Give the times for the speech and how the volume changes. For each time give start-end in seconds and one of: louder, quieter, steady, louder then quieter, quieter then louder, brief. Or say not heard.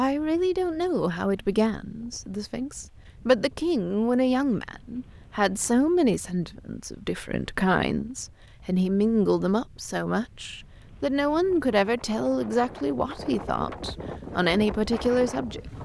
0.0-15.6 steady.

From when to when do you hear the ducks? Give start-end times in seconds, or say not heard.
not heard.